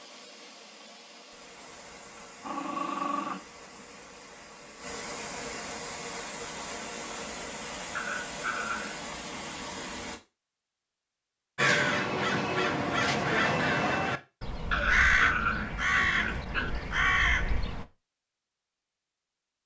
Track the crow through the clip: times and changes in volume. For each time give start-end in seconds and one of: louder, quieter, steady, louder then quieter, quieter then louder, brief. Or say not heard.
11.6-17.9 steady.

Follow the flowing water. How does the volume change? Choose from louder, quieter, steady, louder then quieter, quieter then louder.
louder.